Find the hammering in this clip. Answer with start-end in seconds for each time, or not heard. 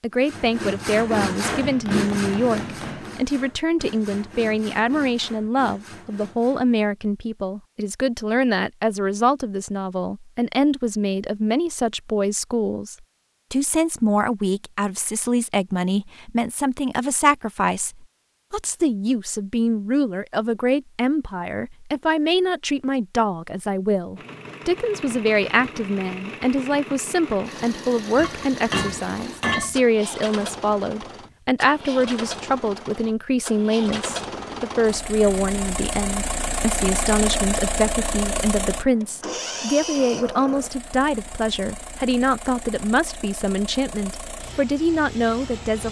1.5-3.1, 28.1-29.8.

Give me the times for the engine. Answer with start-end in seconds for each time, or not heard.
24.1-45.8.